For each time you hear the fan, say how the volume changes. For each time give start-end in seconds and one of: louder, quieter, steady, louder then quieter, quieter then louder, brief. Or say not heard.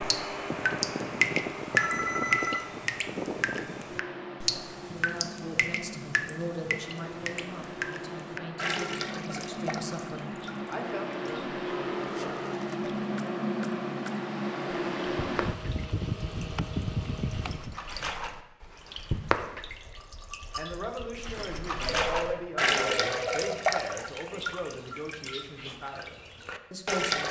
0.0-17.8 quieter then louder.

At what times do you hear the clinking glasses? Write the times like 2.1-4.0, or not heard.
19.9-20.6.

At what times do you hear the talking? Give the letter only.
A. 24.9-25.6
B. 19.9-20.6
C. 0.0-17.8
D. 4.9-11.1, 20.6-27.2
D.